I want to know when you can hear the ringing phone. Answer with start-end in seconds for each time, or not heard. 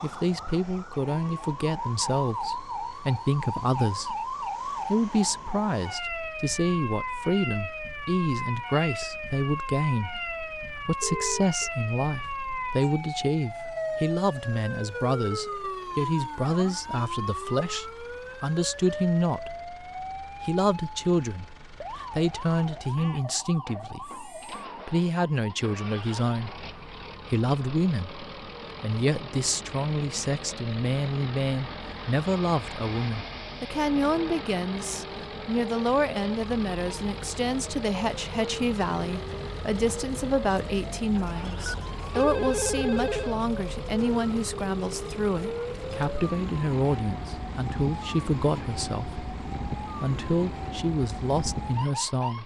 11.0-11.7, 23.2-24.6, 41.6-43.4.